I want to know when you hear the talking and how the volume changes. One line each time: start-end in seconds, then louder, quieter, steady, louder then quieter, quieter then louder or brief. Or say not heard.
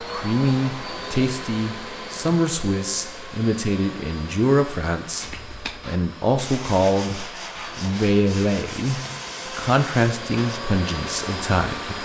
0.1-12.0 steady.